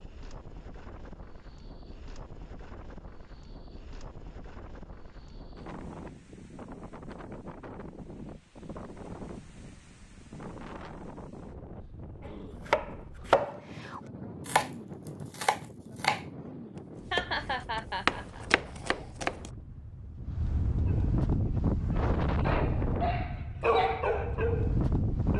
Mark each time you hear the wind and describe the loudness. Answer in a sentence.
The wind can be heard from 0.0 to 25.3 s, getting louder.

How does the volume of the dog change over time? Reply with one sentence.
The volume of the dog goes up, then down.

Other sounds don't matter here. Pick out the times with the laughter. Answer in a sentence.
You can hear the laughter from 17.1 to 18.4 s.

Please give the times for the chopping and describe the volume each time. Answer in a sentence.
You can hear the chopping from 12.2 to 19.5 s, getting quieter then louder.